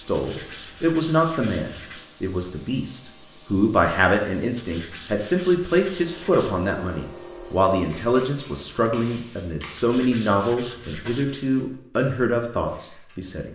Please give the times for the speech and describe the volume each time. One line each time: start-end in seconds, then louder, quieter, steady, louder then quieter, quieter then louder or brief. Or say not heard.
0.0-13.5 steady.